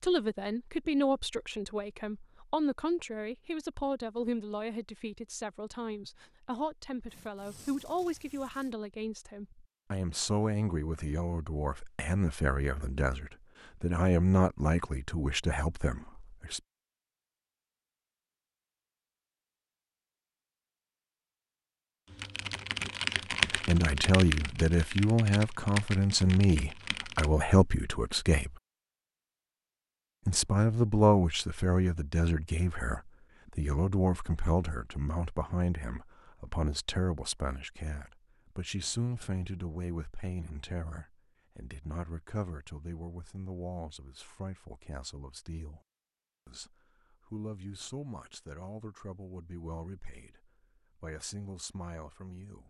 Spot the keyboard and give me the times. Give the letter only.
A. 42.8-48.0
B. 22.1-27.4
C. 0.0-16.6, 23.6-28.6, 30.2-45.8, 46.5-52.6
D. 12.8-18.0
B.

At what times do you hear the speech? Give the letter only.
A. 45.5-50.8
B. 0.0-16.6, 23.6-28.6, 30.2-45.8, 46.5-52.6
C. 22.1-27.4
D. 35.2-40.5
B.